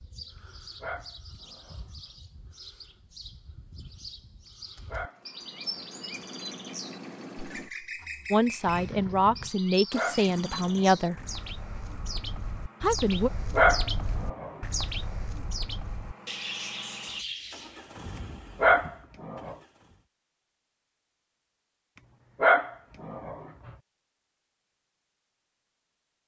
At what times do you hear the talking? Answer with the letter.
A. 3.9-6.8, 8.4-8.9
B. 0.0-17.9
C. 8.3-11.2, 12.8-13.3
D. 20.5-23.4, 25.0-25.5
C.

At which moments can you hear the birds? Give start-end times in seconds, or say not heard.
0.0-17.9.